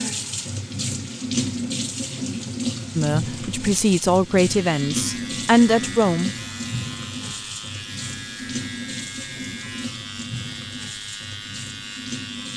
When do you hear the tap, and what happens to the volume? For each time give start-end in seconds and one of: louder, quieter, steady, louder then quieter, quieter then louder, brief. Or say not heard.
0.0-12.5 quieter.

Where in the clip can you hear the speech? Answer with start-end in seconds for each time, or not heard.
3.0-6.3.